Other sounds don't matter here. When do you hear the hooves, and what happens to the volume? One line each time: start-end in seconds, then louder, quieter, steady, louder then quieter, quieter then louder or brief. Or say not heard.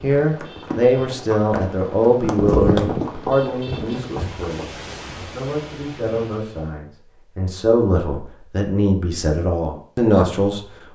0.0-4.8 louder then quieter.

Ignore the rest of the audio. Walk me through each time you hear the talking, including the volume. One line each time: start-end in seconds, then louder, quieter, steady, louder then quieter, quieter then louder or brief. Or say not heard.
0.0-10.9 quieter then louder.